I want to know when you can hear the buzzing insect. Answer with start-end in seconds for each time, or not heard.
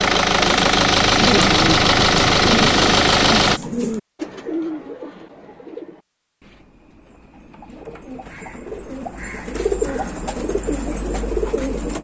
not heard.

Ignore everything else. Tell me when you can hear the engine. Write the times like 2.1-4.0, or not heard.
0.0-3.6.